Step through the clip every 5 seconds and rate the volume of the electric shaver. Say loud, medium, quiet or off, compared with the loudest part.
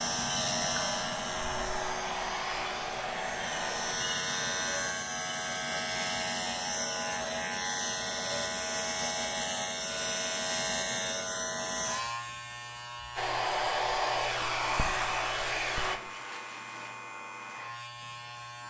loud, loud, loud, medium.